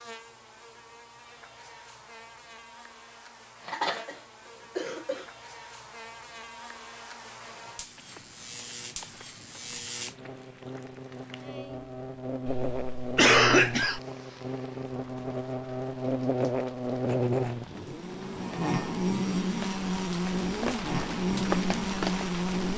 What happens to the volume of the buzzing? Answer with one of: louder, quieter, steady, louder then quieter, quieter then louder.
louder.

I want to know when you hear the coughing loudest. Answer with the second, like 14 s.
13 s.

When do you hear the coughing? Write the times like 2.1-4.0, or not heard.
3.6-5.2, 12.4-14.0.